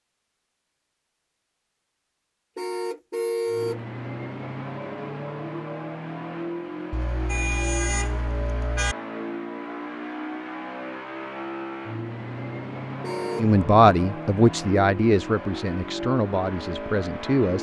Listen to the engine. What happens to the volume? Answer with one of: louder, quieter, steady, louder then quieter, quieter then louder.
steady.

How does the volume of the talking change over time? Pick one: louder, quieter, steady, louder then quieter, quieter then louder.
quieter.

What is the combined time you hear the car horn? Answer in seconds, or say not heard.
4 s.